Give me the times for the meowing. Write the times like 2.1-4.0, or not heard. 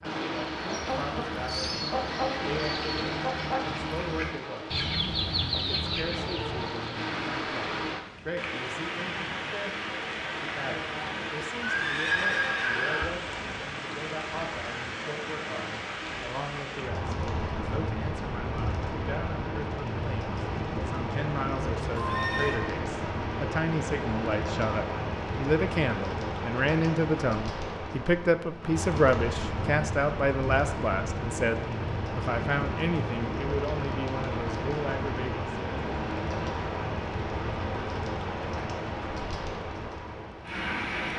not heard.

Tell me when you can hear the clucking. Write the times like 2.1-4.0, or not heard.
0.4-6.8.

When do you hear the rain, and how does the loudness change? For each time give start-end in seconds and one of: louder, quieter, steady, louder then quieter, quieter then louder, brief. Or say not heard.
0.0-41.1 steady.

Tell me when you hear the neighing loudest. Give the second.
12 s.